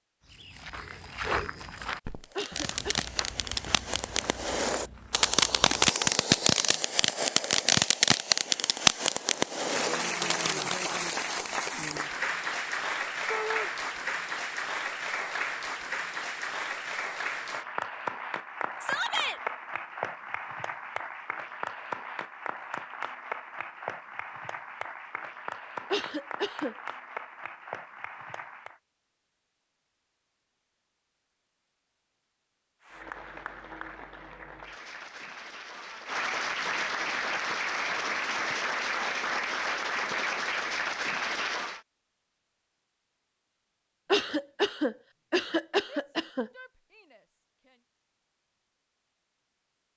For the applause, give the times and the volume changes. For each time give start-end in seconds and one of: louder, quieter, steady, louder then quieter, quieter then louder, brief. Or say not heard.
9.6-28.8 quieter
32.8-41.8 louder.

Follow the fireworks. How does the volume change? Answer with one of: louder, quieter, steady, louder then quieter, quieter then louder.
louder then quieter.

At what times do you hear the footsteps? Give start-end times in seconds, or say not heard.
0.2-5.9.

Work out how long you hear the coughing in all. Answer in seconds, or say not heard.
4 s.